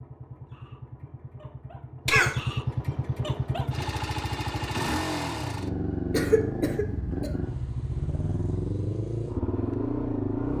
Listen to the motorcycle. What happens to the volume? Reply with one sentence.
The volume of the motorcycle goes up.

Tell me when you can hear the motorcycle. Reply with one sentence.
You can hear the motorcycle from 0.0 to 10.5 s.